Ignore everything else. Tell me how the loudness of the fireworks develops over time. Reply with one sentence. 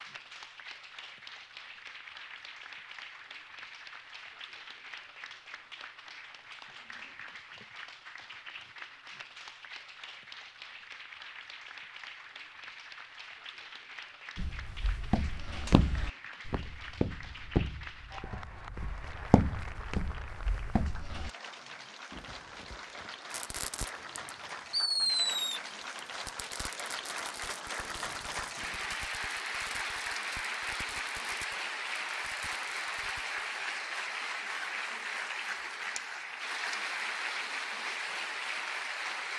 The volume of the fireworks goes up, then down.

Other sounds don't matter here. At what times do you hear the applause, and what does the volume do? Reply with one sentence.
You can hear the applause from 0.0 to 39.3 s, getting louder.